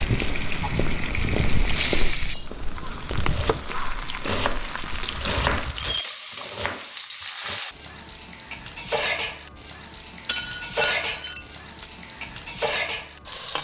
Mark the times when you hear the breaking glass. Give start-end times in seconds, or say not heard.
1.7-2.5, 5.8-6.3, 10.2-11.8.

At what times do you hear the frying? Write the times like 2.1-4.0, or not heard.
0.0-13.5.